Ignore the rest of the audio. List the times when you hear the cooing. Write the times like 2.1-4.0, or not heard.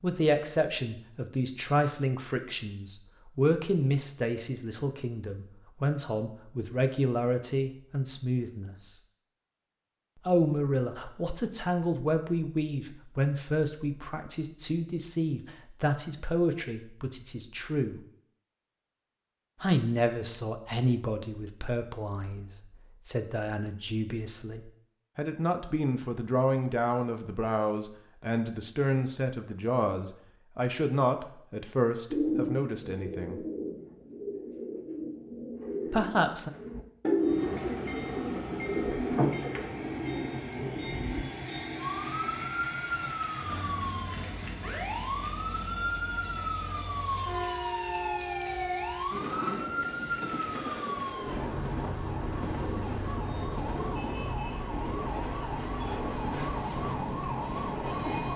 32.1-41.2.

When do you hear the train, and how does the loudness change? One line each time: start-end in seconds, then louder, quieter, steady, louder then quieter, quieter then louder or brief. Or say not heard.
37.2-58.3 steady.